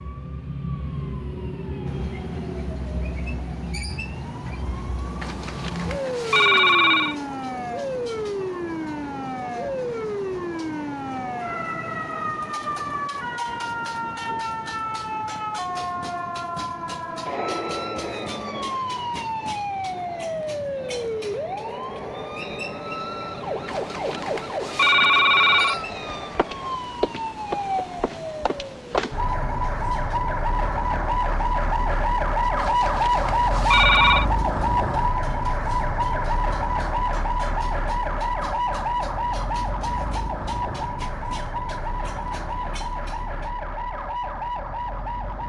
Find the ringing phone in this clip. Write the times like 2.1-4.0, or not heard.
5.2-7.2, 23.6-25.8, 32.5-34.2.